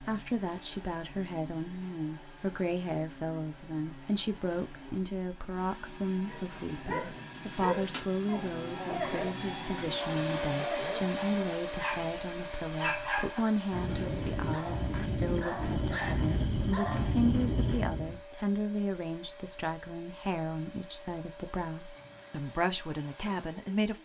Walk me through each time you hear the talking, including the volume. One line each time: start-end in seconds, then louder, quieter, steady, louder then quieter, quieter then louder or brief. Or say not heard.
0.0-24.0 steady.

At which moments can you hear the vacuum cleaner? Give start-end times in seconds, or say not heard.
0.0-24.0.